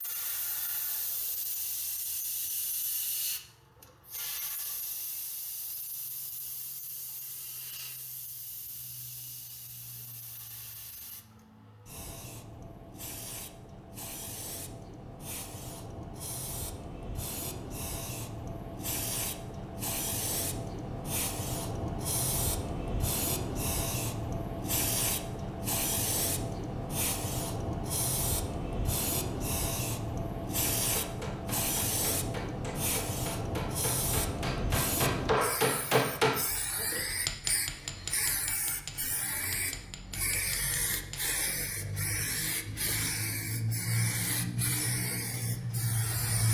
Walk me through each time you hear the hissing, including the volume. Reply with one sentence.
The hissing can be heard from 0.0 to 46.4 s, getting louder.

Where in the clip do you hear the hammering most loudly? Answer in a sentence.
The loudest moment of the hammering is at 36 seconds.